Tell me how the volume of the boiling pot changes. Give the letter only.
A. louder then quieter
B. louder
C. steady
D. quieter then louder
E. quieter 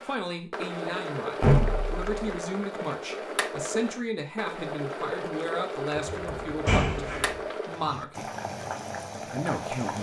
C.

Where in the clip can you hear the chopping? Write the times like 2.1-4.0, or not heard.
not heard.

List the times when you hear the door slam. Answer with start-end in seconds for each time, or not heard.
1.4-2.1, 6.0-7.3.